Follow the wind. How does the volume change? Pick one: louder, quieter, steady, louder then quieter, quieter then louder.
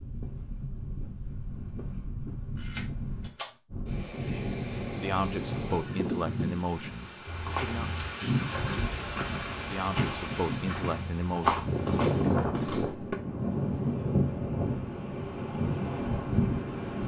louder.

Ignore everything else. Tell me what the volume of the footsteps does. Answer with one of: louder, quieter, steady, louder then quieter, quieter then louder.
louder then quieter.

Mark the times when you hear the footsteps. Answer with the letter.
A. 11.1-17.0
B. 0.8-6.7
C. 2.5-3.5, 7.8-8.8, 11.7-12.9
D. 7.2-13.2
D.